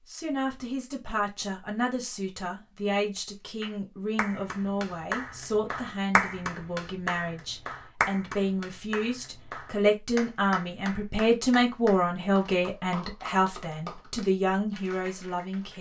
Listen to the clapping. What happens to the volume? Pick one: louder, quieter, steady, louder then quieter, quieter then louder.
quieter.